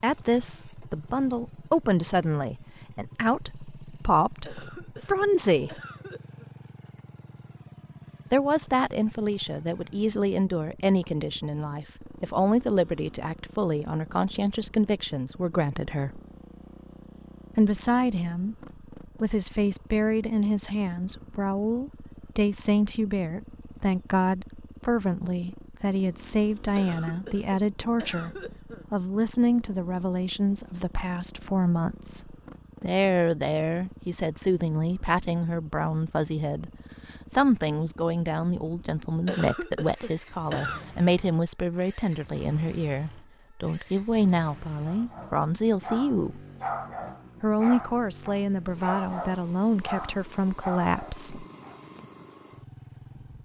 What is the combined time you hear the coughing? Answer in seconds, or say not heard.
6 s.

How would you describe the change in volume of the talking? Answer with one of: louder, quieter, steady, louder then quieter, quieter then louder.
steady.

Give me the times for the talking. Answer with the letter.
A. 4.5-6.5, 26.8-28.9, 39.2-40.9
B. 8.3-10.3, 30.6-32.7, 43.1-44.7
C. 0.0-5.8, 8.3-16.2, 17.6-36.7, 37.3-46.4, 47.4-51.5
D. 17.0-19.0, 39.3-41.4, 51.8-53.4
C.